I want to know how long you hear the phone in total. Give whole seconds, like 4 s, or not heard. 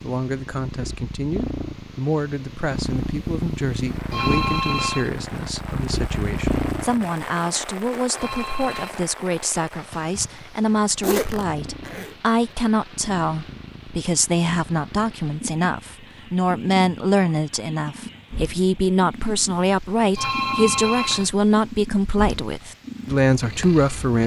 3 s.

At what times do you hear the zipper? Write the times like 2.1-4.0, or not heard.
11.0-12.2.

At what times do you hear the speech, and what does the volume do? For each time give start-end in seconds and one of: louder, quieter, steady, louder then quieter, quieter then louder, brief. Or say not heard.
0.0-24.2 louder.